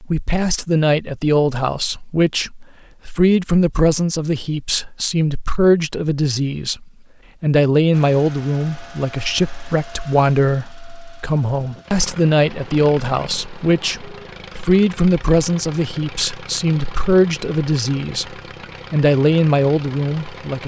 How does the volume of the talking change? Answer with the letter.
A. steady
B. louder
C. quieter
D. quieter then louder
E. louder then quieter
A.